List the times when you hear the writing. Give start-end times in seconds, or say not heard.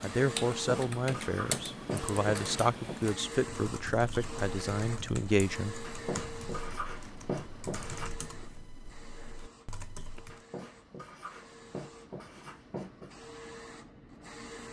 0.6-3.0, 5.8-8.1, 10.3-13.1.